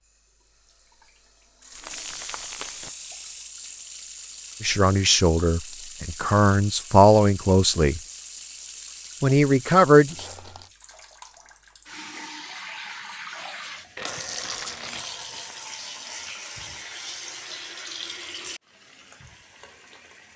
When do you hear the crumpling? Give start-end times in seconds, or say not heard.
1.8-2.9, 10.1-10.7, 13.9-15.6.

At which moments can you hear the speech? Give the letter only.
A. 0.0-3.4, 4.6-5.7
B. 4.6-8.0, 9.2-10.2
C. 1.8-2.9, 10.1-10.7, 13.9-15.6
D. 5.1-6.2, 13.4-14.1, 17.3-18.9
B.